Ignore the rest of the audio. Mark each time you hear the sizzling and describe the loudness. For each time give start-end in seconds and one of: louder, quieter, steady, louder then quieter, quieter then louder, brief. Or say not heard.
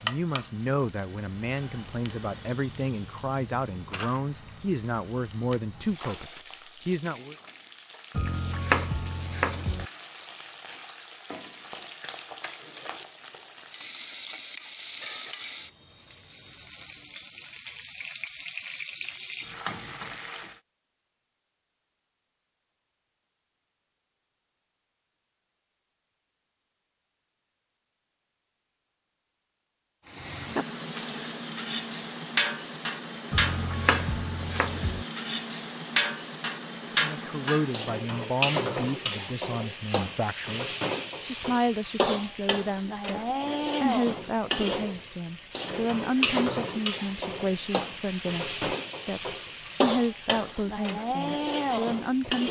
0.0-20.6 louder
30.1-52.4 steady.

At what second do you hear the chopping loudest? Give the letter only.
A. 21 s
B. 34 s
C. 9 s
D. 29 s
C.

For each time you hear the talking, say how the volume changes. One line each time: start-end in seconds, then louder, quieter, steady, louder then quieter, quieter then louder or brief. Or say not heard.
0.0-7.3 steady
36.9-52.4 steady.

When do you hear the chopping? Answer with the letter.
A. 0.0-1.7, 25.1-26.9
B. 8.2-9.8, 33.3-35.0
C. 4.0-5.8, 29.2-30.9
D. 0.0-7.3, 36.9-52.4
B.